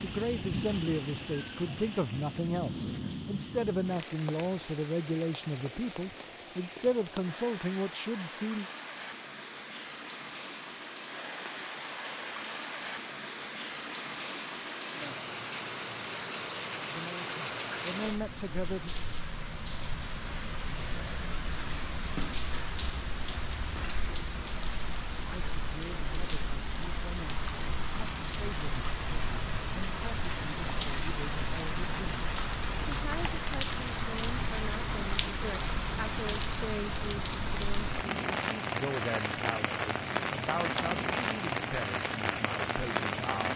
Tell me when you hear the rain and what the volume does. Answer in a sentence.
You can hear the rain from 0.0 to 43.5 s, getting louder.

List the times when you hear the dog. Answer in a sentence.
The dog can't be heard in this clip.